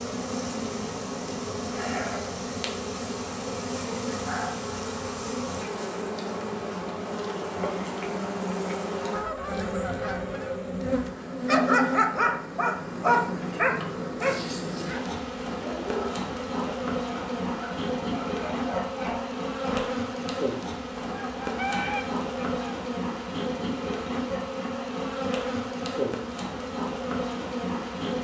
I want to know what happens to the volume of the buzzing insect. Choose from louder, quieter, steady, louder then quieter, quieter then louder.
steady.